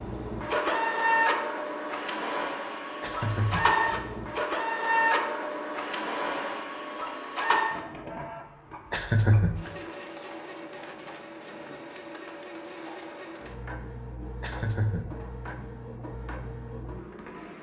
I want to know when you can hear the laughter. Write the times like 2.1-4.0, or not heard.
3.0-3.7, 8.9-9.6, 14.4-15.1.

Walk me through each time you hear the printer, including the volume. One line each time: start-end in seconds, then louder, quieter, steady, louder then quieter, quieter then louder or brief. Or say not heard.
0.0-17.5 quieter.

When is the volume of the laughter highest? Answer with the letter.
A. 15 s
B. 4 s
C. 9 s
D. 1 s
C.